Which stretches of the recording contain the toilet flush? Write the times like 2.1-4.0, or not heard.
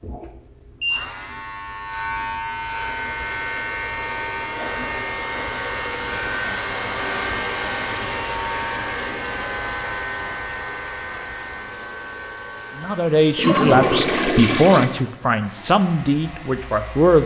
13.3-14.9.